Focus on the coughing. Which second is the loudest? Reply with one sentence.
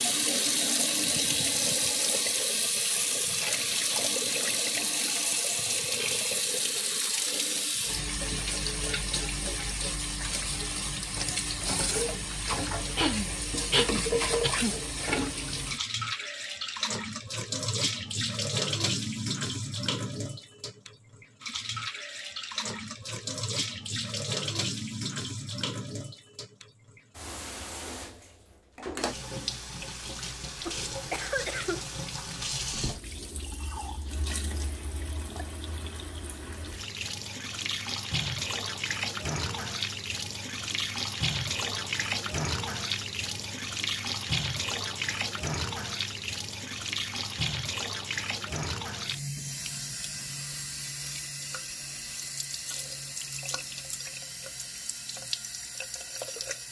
The volume of the coughing peaks at 14 seconds.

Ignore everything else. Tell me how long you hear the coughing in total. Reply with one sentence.
The coughing can be heard for 3 seconds in total.